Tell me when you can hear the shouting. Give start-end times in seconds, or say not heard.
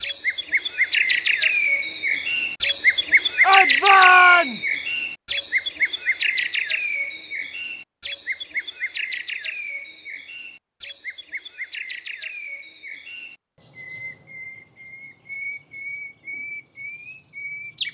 3.4-4.8.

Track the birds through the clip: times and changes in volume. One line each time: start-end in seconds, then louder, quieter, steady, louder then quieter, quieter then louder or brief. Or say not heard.
0.0-17.8 quieter.